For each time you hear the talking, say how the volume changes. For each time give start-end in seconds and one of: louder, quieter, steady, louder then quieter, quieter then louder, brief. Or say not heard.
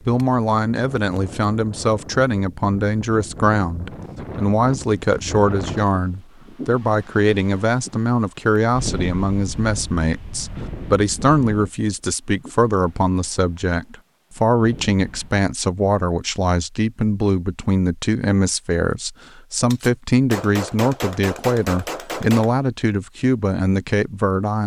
0.1-24.6 steady.